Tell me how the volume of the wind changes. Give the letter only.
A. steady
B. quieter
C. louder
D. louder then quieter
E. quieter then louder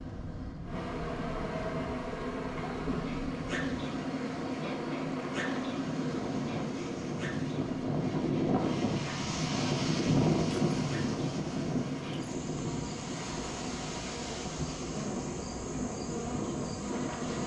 D.